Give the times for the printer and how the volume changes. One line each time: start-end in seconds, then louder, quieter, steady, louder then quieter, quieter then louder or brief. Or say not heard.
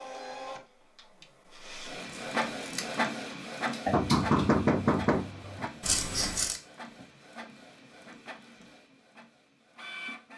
0.0-10.3 louder then quieter.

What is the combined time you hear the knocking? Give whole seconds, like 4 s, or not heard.
2 s.